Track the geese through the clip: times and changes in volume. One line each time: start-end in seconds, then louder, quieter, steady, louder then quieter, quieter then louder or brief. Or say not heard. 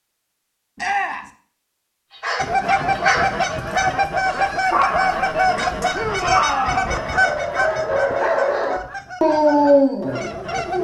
2.4-10.8 quieter.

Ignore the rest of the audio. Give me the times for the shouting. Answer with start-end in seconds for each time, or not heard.
0.8-1.3, 5.9-7.0.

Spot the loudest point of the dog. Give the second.
10 s.